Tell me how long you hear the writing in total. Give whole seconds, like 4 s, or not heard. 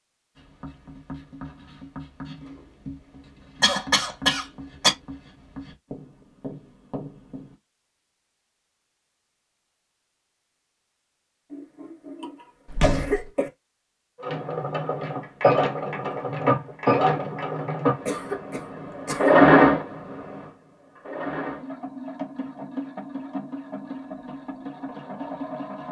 7 s.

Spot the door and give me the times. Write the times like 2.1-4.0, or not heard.
12.7-13.2.